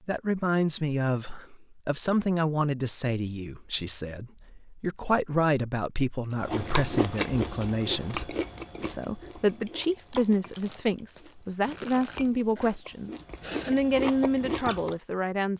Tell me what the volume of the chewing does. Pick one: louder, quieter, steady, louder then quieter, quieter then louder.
quieter then louder.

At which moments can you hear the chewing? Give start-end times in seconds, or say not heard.
6.4-14.9.